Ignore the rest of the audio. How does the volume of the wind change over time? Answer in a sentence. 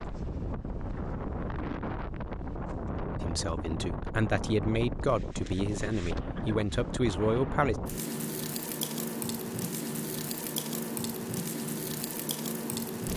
The volume of the wind stays about the same.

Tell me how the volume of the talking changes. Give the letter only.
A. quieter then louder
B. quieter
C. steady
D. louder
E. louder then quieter
C.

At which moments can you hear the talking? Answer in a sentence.
The talking can be heard from 3.2 to 7.8 s.